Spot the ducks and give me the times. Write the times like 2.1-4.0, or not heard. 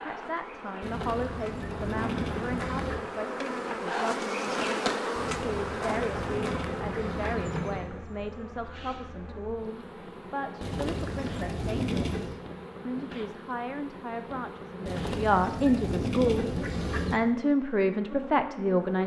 0.8-3.0, 5.2-7.9, 10.6-12.4, 14.8-17.2.